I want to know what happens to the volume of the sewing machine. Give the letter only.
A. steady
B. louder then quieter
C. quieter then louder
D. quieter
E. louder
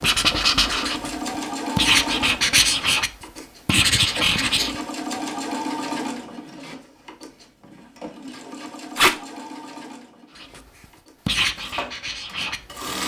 D.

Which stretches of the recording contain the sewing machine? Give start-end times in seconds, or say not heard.
0.1-13.0.